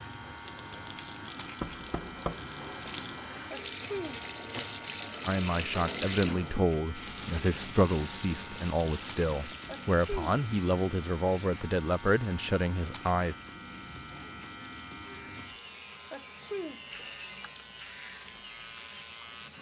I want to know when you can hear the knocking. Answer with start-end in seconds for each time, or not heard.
1.6-2.4.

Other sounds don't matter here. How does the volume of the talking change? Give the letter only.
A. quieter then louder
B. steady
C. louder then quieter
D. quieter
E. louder
B.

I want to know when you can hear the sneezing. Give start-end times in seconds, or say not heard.
3.5-4.2, 9.7-10.3, 16.1-16.8.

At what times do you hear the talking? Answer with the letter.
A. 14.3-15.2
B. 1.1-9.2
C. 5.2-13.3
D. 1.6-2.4
C.